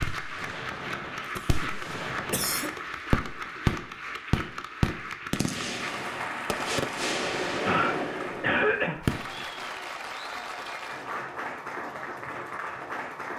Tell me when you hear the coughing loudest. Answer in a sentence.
The loudest moment of the coughing is at 9 seconds.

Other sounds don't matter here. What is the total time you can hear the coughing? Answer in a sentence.
You can hear the coughing for 3 seconds altogether.